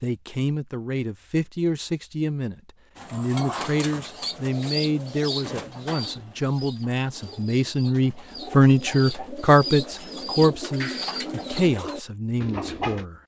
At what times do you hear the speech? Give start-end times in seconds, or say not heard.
0.0-13.2.